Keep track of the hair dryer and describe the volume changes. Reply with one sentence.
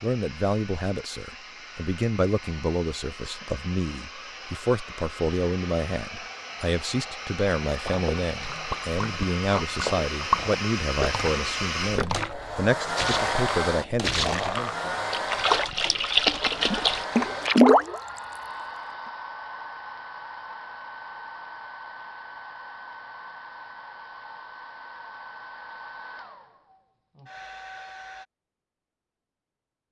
The volume of the hair dryer goes up, then down.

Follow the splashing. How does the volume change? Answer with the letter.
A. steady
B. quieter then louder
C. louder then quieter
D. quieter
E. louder
E.